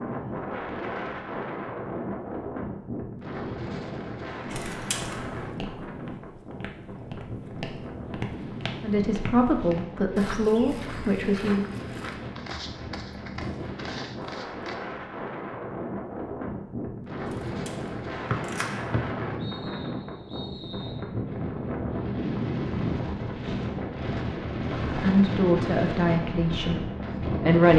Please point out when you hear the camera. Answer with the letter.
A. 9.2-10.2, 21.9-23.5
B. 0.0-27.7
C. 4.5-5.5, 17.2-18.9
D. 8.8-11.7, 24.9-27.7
C.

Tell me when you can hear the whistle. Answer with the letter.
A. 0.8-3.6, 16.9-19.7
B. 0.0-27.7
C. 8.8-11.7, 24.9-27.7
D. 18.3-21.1
D.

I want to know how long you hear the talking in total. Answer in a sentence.
You can hear the talking for 6 seconds altogether.